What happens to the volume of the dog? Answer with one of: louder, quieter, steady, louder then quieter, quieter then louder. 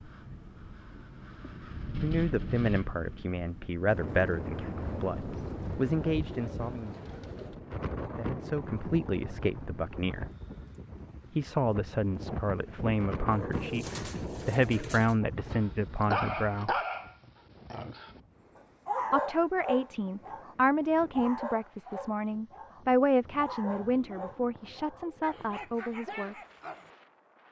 quieter.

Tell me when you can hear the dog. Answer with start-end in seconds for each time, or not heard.
15.5-26.9.